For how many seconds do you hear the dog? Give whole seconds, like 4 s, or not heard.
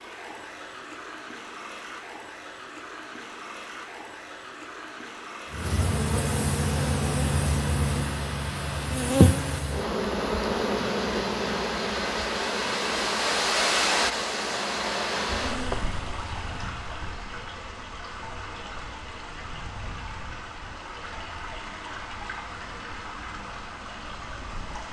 not heard.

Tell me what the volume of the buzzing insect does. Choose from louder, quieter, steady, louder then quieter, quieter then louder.
quieter.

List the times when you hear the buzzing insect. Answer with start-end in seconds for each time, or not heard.
5.5-15.8.